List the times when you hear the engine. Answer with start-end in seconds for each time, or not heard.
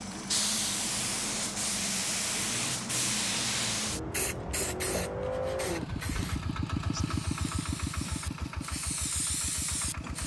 0.0-10.2.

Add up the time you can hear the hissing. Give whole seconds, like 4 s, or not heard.
10 s.